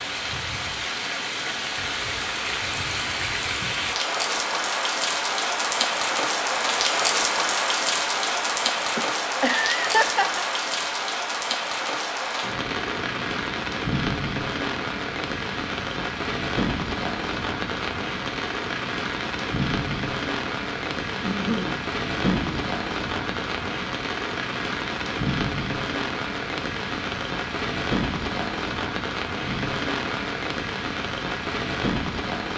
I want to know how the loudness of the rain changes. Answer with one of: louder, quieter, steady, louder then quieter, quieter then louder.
steady.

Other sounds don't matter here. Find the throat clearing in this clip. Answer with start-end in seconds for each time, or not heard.
21.2-22.6.